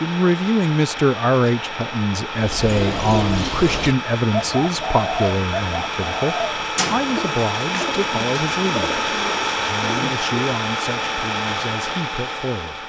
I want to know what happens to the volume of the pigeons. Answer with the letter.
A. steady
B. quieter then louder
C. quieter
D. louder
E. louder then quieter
C.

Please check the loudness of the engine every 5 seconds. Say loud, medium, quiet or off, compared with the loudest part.
medium, loud, loud.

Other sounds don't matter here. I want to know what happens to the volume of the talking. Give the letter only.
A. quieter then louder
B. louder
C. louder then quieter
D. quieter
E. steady
D.